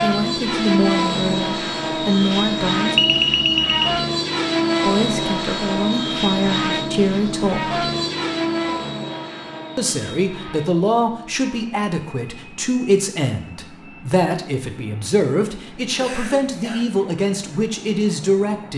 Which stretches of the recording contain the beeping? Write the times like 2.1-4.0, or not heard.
3.0-4.0.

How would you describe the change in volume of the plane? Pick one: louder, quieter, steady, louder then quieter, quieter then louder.
quieter.